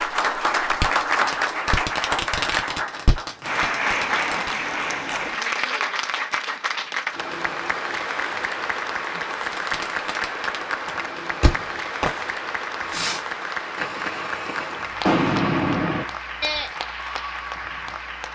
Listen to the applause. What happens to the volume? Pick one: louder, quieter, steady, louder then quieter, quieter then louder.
quieter.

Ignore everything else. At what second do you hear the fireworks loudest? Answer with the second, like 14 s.
15 s.